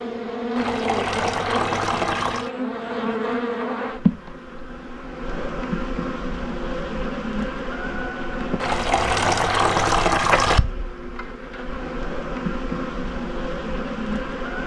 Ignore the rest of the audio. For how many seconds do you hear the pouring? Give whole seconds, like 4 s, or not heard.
4 s.